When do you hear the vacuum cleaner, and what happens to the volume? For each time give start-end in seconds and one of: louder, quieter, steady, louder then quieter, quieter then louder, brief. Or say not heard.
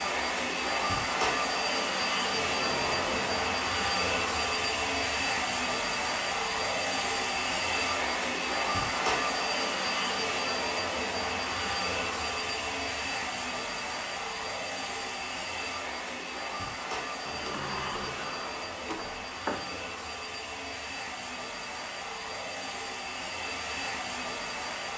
0.0-24.9 quieter.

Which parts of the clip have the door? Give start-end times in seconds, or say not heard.
2.5-3.4, 17.2-19.8.